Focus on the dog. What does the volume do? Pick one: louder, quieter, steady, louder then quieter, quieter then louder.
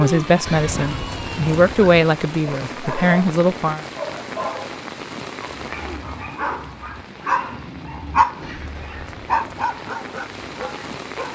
louder then quieter.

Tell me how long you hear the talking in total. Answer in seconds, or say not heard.
4 s.